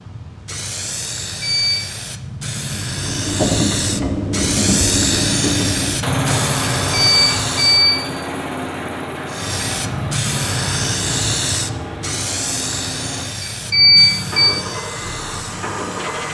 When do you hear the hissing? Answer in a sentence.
The hissing can be heard from 0.0 to 7.8 s and from 9.2 to 16.3 s.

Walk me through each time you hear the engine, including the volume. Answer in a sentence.
You can hear the engine from 2.6 to 16.3 s, getting quieter.